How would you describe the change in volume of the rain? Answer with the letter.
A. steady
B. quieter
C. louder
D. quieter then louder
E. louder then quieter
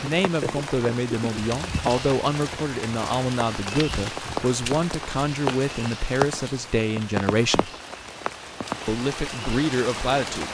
A.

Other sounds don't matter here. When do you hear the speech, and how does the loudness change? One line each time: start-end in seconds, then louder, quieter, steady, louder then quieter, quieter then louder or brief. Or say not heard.
0.0-7.7 steady
8.8-10.5 brief.